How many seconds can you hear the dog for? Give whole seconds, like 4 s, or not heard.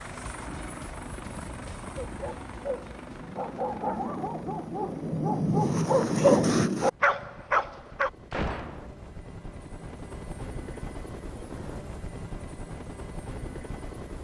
6 s.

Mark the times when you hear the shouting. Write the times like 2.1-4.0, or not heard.
not heard.